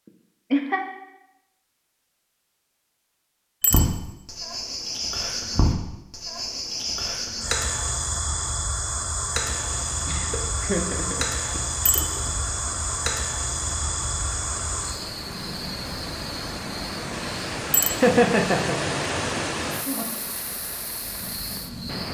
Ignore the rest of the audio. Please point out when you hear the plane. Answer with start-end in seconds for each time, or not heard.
not heard.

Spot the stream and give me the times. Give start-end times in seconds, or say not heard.
9.4-22.0.